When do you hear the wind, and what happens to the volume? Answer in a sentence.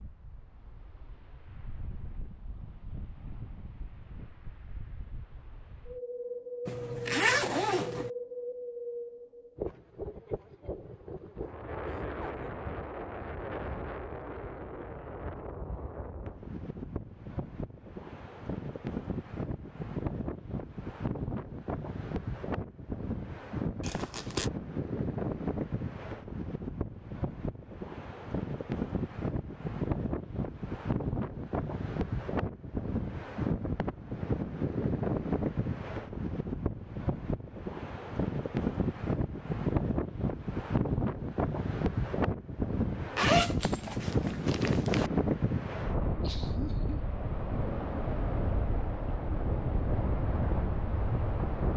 The wind can be heard from 0.0 to 51.7 s, getting louder.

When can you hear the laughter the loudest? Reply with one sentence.
The volume of the laughter peaks at 47 seconds.